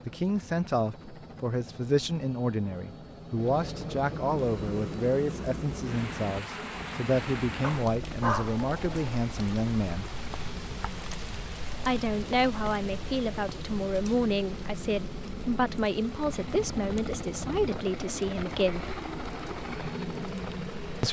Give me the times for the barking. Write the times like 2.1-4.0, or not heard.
7.6-9.2.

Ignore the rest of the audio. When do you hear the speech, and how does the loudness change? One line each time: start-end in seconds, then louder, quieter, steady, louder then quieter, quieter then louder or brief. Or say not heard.
0.1-10.1 steady
11.8-18.9 steady.